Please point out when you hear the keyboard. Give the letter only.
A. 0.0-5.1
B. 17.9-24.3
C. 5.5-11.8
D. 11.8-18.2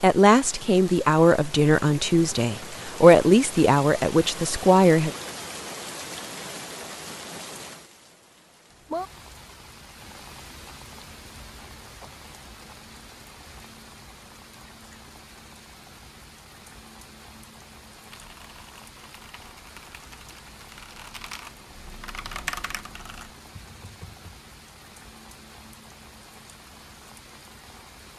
B.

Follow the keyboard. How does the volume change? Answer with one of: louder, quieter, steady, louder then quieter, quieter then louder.
louder then quieter.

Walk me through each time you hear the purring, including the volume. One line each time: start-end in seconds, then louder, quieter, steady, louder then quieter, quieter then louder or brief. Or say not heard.
not heard.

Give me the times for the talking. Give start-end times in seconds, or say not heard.
0.0-5.1.